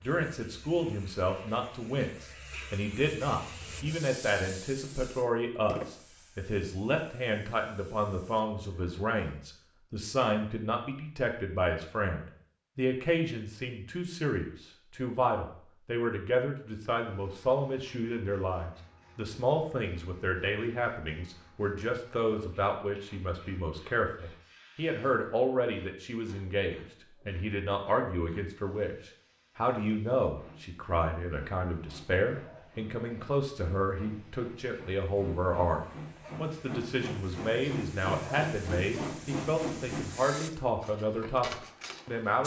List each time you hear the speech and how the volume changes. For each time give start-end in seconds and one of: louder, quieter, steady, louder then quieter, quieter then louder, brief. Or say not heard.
0.0-42.4 steady.